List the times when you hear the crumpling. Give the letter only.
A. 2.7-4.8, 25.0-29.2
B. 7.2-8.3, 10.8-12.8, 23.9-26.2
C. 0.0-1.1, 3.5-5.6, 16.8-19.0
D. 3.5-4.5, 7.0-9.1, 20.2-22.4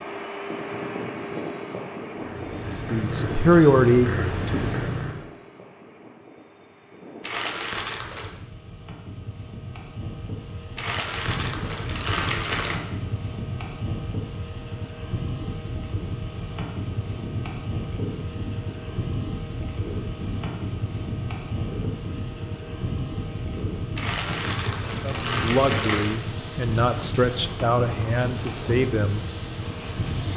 B.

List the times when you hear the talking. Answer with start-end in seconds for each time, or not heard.
2.7-4.8, 25.0-29.2.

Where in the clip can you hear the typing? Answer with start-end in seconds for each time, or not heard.
not heard.